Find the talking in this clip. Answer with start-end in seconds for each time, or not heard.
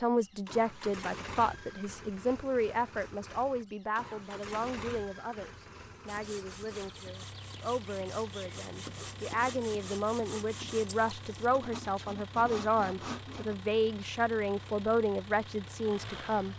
0.0-16.5.